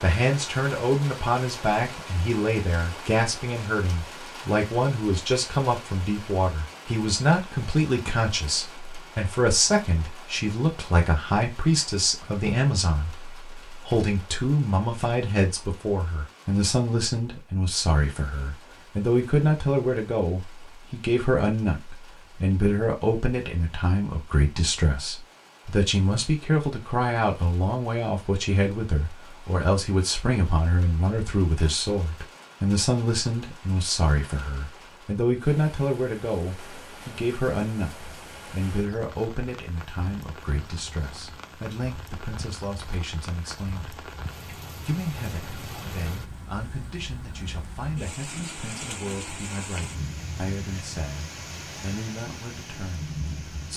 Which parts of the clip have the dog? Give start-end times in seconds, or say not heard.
not heard.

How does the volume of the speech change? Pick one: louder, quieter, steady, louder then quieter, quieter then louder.
quieter.